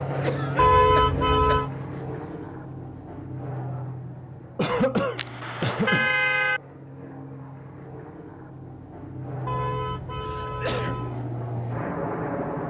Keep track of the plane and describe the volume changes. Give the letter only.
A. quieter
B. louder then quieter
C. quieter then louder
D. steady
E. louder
C.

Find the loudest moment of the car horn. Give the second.
1 s.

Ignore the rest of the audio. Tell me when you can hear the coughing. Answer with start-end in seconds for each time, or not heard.
0.2-1.6, 4.5-6.1, 10.2-11.1.